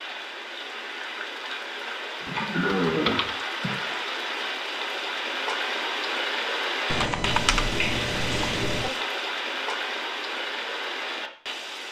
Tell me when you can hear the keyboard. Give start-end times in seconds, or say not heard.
2.2-3.4, 6.9-8.9.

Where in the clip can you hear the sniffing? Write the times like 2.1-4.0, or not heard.
2.2-4.0.